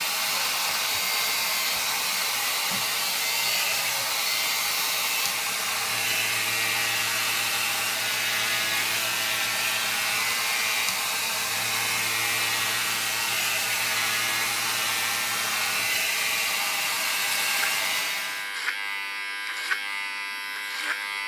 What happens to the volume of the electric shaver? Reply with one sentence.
The volume of the electric shaver stays about the same.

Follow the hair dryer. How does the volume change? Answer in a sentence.
The volume of the hair dryer stays about the same.